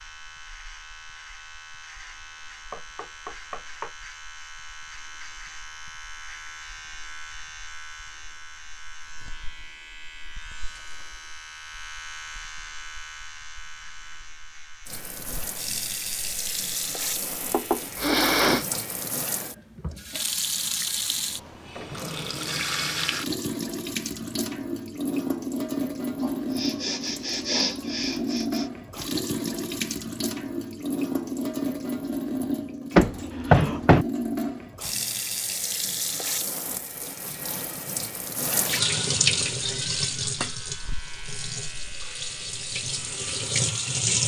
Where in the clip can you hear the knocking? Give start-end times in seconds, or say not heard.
2.7-3.9, 17.5-18.6, 33.0-34.0.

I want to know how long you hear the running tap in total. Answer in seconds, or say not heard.
29 s.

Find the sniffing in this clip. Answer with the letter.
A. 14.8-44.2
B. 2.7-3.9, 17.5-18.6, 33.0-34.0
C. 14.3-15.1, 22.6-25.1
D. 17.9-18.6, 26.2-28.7
D.